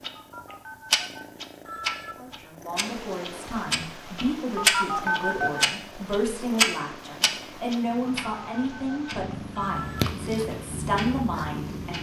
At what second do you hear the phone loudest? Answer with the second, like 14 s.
5 s.